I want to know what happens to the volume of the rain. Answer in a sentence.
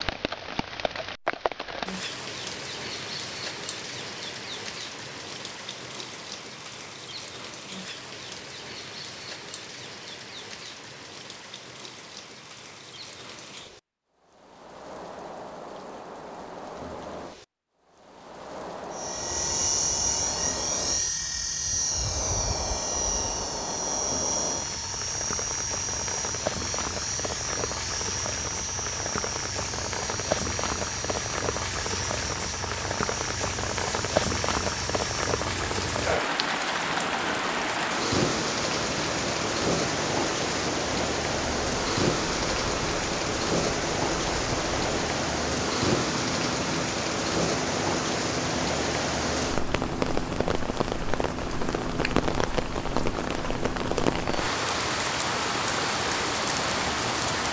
The loudness of the rain goes up.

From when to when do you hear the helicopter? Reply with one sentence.
You can hear the helicopter from 18.9 to 57.4 s.